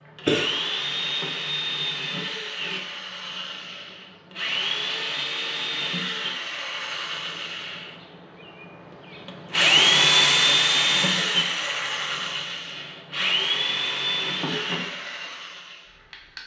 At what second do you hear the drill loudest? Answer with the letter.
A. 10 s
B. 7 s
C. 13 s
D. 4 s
A.